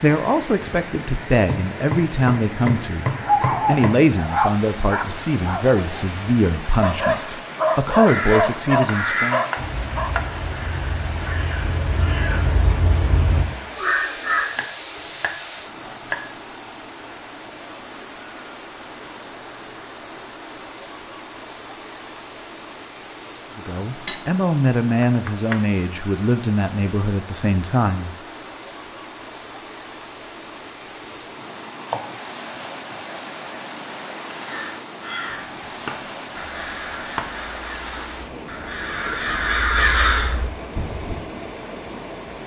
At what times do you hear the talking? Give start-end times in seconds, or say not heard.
0.0-9.4, 23.6-28.1.